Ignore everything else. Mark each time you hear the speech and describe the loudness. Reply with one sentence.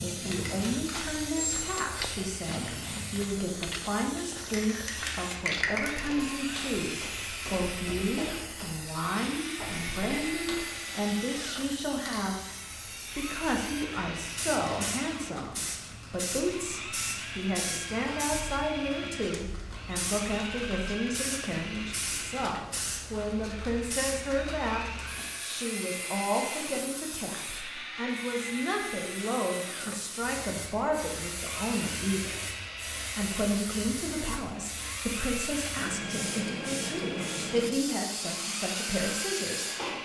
The speech can be heard from 0.0 to 40.0 s, at a steady volume.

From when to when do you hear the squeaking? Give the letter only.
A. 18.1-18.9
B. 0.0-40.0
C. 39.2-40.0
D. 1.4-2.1
D.